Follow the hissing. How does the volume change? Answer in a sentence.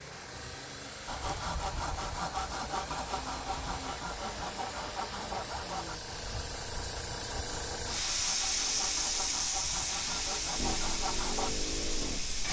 The volume of the hissing goes up.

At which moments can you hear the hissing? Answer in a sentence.
You can hear the hissing from 0.0 to 12.4 s.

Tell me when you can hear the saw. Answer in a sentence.
The saw can be heard from 1.1 to 11.5 s.